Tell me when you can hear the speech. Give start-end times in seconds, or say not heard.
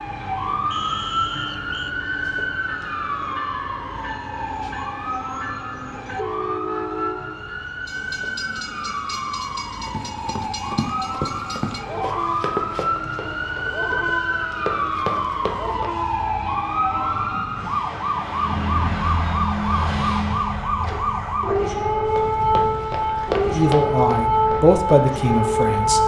23.4-26.0.